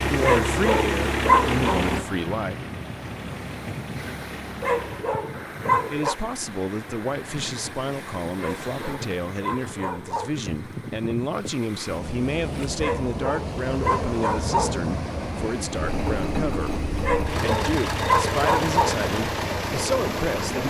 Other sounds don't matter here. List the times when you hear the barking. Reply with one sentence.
The barking can be heard from 0.2 to 1.8 s, from 4.6 to 6.2 s, from 8.3 to 10.4 s, from 12.8 to 14.8 s and from 17.0 to 18.9 s.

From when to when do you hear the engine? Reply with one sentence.
The engine can be heard from 0.0 to 5.2 s and from 15.7 to 20.6 s.